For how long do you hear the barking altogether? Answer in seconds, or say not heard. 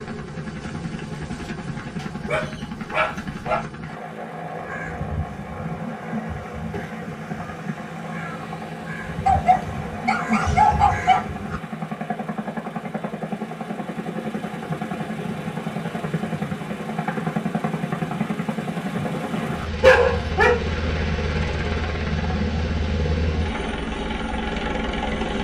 5 s.